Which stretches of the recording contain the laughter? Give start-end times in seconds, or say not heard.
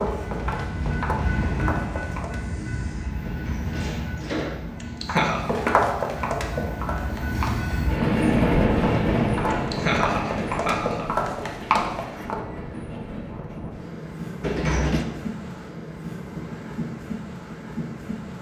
4.8-5.5, 9.5-11.1.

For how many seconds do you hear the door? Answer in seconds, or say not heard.
2 s.